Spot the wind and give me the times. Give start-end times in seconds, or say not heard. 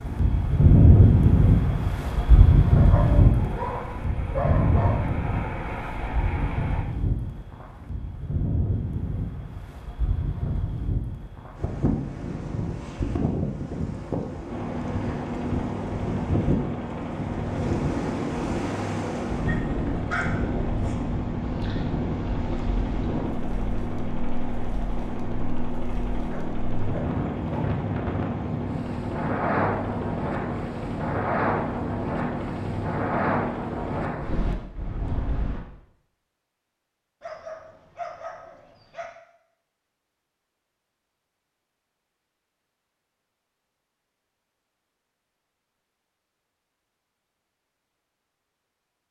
0.0-35.6.